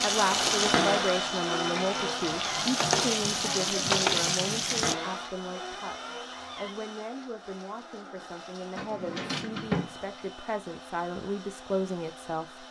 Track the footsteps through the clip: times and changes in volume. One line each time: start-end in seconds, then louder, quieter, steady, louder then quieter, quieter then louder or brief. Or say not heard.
not heard.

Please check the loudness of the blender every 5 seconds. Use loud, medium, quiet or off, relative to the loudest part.
loud, medium, quiet.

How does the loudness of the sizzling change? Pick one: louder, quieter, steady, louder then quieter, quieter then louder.
quieter then louder.